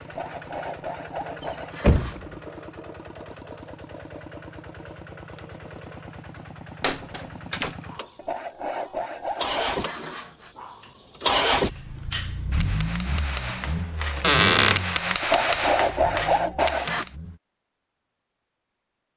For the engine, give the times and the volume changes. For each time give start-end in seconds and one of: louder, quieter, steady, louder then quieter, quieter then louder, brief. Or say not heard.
0.0-17.4 louder then quieter.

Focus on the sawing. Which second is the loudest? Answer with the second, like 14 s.
16 s.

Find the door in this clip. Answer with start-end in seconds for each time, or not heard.
1.4-2.4, 6.8-7.8, 14.2-14.8.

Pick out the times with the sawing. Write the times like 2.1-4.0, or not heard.
0.1-2.2, 8.2-10.5, 15.2-17.1.